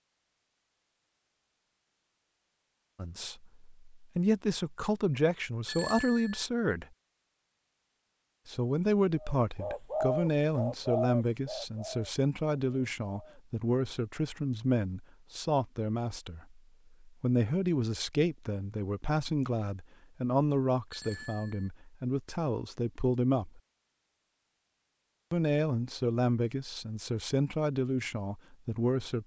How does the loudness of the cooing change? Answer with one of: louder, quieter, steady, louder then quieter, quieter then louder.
quieter.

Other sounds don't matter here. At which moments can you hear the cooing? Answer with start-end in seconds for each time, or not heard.
9.2-13.4.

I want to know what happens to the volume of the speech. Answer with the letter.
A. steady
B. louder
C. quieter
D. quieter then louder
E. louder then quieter
A.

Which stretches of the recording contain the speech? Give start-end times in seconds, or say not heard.
3.0-6.8, 8.4-23.6, 25.3-29.2.